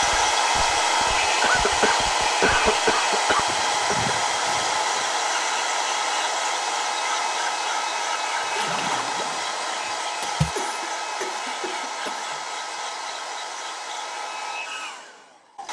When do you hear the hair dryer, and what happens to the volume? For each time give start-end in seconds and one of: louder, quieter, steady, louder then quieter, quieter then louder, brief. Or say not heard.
0.0-15.6 quieter.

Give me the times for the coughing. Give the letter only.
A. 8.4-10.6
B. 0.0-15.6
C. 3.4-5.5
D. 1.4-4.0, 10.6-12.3
D.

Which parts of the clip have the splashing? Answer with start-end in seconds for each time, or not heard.
8.4-10.6.